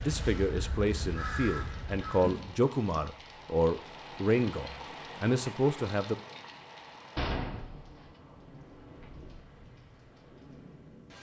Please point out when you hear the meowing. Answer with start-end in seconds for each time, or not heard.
not heard.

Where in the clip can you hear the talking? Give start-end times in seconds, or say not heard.
0.0-6.2.